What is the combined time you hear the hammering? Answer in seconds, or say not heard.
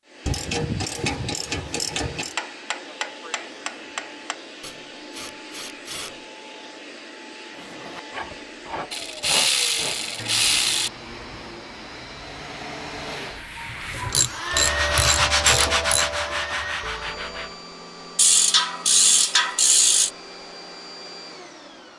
2 s.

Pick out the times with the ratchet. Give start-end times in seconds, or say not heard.
0.2-2.4, 4.6-6.2, 8.9-10.9, 13.7-16.1, 18.1-20.1.